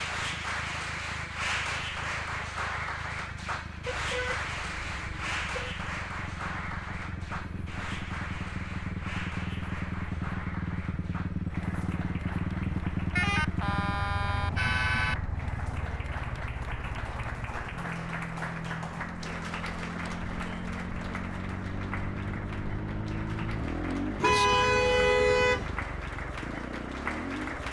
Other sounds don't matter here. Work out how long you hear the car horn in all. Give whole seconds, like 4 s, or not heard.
5 s.